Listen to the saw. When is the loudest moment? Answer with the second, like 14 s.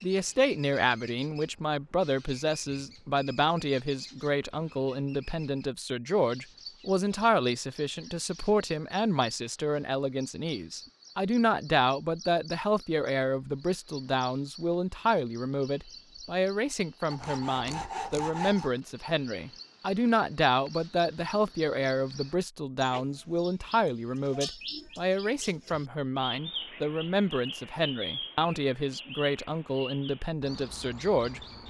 18 s.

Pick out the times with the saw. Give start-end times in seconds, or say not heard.
17.1-18.7.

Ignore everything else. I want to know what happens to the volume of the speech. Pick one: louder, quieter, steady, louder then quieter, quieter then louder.
steady.